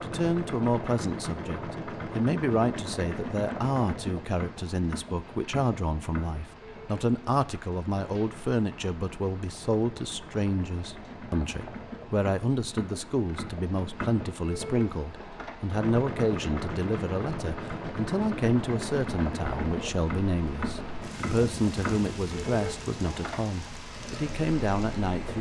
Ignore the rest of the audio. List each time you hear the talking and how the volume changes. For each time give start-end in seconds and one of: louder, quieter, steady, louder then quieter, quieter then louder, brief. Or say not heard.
0.0-25.3 steady.